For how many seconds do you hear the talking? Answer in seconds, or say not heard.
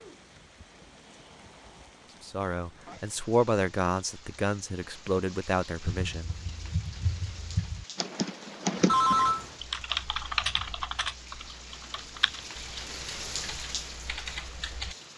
4 s.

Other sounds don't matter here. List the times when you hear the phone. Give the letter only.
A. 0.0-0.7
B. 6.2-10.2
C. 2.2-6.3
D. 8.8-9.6
D.